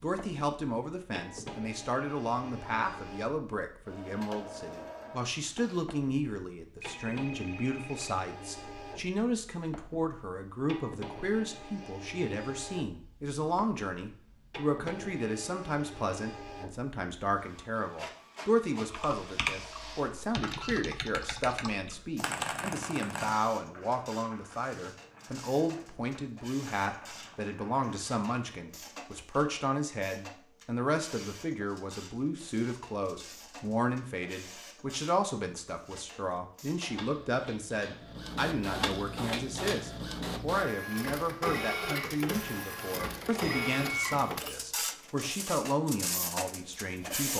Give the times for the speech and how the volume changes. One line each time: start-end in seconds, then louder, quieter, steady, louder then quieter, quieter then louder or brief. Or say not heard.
0.0-47.3 steady.